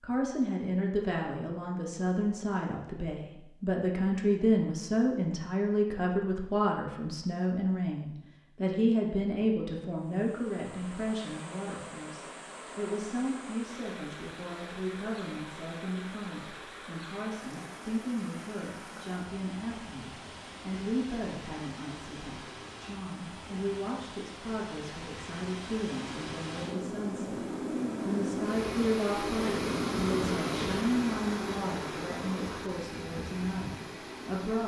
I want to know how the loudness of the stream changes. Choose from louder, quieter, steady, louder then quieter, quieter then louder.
louder.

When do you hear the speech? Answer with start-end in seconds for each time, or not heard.
0.0-34.6.